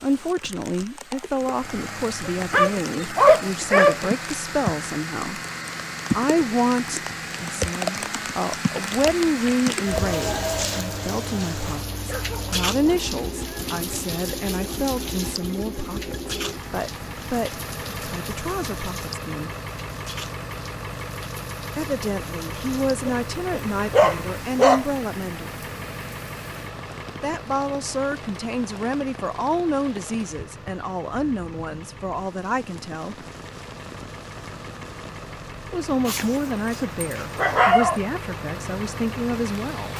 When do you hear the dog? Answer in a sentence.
The dog can be heard from 2.2 to 4.1 s, from 12.1 to 13.8 s, from 23.1 to 24.9 s and from 36.0 to 38.0 s.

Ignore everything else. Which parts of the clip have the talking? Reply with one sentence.
The talking can be heard from 0.0 to 5.4 s, from 6.2 to 19.5 s, from 21.8 to 25.5 s, from 27.2 to 33.1 s and from 35.7 to 39.9 s.